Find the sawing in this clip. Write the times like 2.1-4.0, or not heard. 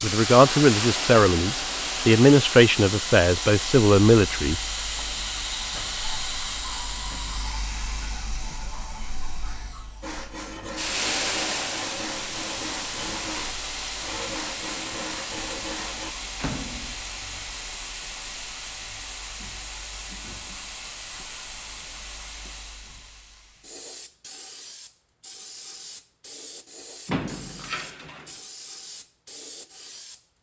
10.0-16.1.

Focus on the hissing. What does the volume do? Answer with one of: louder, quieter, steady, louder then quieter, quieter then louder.
quieter.